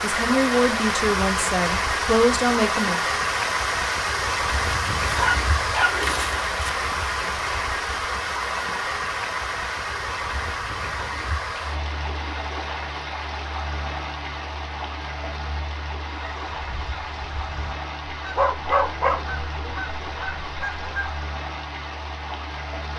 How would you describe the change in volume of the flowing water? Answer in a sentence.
The loudness of the flowing water goes down.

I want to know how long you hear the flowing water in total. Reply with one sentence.
You can hear the flowing water for 23 seconds altogether.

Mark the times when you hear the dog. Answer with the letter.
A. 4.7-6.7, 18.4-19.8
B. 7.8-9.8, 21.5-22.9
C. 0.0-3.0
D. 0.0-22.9
A.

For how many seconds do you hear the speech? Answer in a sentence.
The speech can be heard for 3 seconds in total.